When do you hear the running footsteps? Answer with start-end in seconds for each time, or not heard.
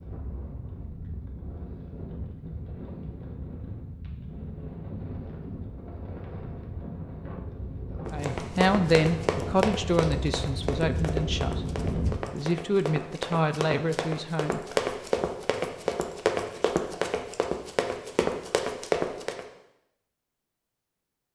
8.1-19.4.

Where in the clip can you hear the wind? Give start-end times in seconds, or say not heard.
0.0-12.2.